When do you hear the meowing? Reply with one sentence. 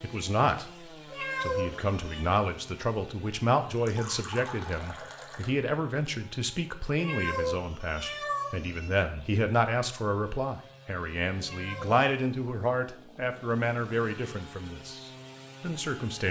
The meowing can be heard from 1.1 to 2.3 s, from 7.0 to 9.0 s and from 11.4 to 12.0 s.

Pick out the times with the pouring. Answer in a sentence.
The pouring can be heard from 3.7 to 5.5 s.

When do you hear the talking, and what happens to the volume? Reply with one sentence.
The talking can be heard briefly from 0.0 to 0.7 s; and from 1.4 to 16.2 s, at a steady volume.